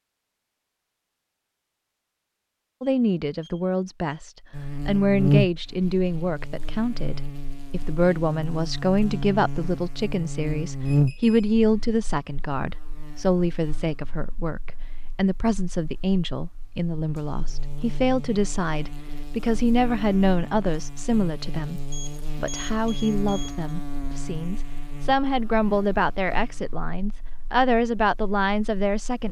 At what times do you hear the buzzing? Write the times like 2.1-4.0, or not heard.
4.5-29.2.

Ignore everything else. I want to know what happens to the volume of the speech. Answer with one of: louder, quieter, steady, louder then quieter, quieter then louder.
steady.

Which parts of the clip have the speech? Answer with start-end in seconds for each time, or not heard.
2.8-29.2.